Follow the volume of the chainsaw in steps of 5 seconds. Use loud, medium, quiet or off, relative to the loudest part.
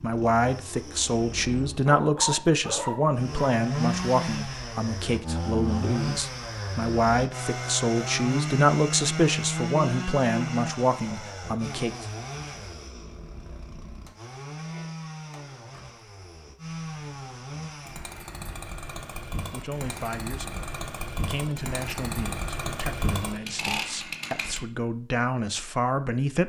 loud, loud, medium, medium, loud, off.